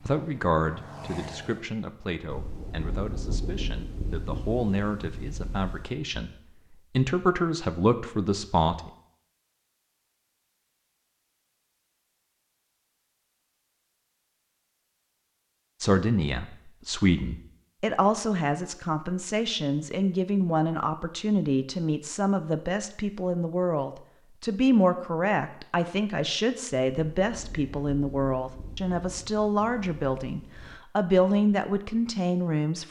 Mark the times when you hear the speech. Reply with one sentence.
The speech can be heard from 0.0 to 6.3 s, from 7.0 to 8.9 s and from 15.8 to 32.8 s.